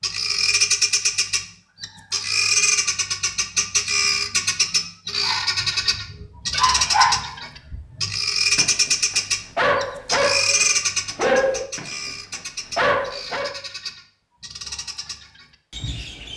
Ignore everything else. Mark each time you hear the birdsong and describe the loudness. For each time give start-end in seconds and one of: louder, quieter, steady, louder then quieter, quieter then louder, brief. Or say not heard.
0.0-16.3 quieter.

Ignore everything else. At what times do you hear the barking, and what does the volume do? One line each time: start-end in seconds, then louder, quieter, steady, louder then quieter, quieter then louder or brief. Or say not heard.
5.2-13.6 quieter then louder.